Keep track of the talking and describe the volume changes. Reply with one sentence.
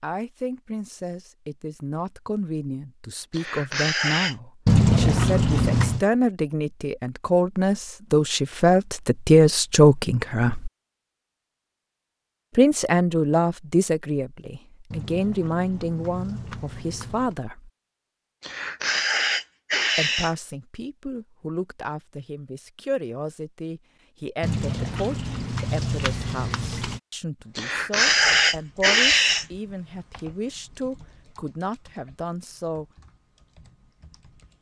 The volume of the talking goes up, then down.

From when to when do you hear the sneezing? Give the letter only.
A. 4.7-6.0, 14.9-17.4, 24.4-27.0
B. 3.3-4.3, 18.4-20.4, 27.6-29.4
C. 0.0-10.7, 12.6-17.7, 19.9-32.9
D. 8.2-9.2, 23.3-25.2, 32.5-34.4
B.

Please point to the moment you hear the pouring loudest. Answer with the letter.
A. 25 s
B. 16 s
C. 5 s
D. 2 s
C.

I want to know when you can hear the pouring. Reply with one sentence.
You can hear the pouring from 4.7 to 6.0 s, from 14.9 to 17.4 s and from 24.4 to 27.0 s.